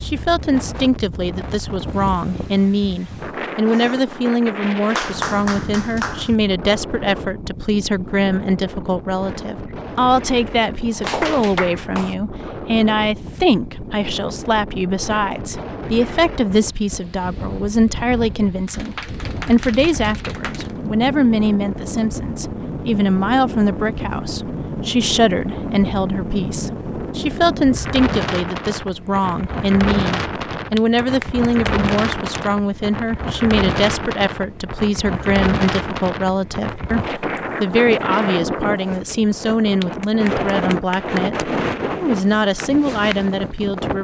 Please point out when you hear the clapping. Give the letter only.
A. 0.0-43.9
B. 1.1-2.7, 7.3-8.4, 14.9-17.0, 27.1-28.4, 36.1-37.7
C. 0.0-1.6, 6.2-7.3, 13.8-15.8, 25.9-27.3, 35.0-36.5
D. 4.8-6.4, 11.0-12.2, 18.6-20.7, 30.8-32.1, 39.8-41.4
D.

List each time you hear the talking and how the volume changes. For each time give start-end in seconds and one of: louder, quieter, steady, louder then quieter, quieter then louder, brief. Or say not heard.
0.0-43.9 steady.